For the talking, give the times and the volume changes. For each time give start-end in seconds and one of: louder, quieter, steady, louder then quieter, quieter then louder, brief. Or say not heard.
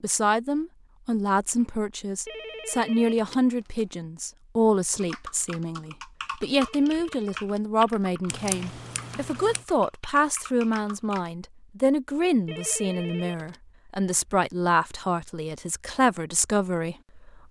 0.0-17.3 steady.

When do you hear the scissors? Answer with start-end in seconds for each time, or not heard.
8.2-9.7.